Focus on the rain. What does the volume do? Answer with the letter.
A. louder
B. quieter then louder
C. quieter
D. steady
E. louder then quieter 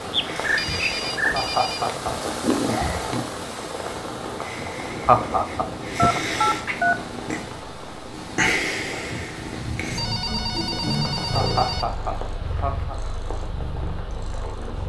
C.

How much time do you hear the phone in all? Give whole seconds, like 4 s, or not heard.
5 s.